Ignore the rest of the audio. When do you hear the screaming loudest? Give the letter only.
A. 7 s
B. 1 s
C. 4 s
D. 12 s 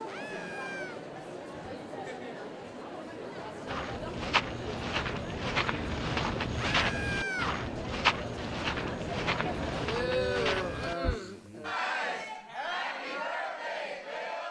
A.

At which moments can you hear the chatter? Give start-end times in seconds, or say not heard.
0.0-14.4.